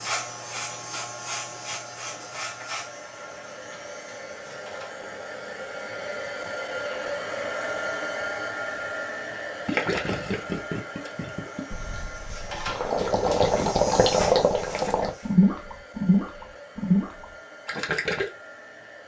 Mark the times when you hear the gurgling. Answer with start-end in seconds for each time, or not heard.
9.7-18.3.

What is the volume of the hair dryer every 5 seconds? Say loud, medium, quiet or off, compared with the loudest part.
medium, loud, medium, quiet.